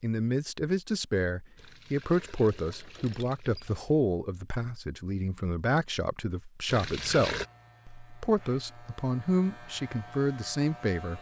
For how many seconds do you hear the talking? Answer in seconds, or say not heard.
11 s.